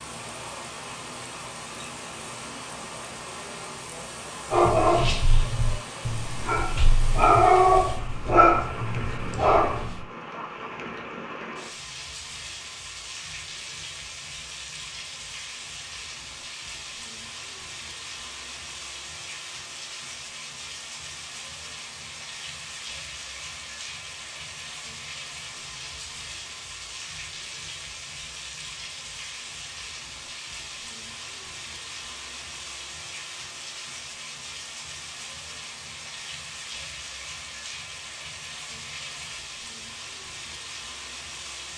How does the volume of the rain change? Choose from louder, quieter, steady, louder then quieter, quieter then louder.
steady.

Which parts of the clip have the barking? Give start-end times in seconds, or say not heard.
4.5-10.0.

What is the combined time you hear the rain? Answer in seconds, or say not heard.
42 s.